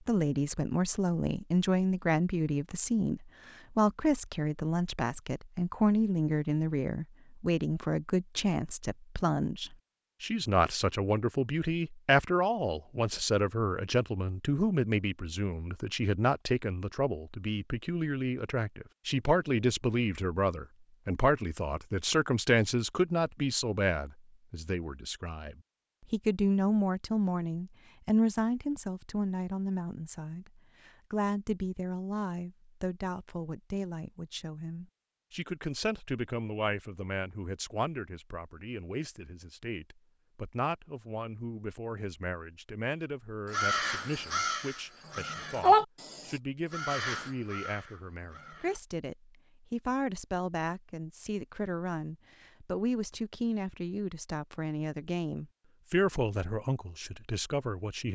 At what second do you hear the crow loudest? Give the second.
46 s.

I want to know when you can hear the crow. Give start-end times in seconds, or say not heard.
43.5-48.8.